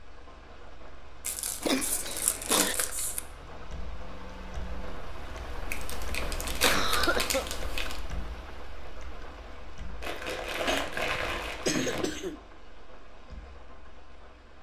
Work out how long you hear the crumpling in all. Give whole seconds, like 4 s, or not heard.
6 s.